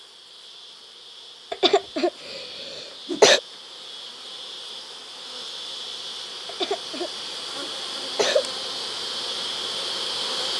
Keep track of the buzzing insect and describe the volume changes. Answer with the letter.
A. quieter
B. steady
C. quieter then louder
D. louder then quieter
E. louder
E.